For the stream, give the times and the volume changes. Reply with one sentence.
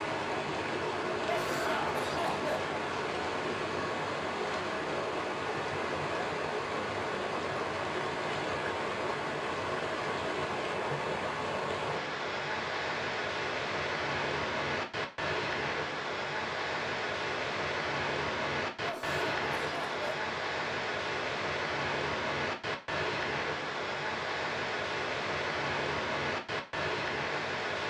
You can hear the stream from 0.0 to 27.8 s, at a steady volume.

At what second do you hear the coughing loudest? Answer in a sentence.
The loudest moment of the coughing is at 2 seconds.